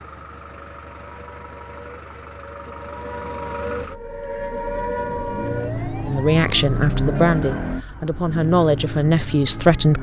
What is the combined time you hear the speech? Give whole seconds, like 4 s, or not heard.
4 s.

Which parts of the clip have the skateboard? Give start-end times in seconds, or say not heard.
not heard.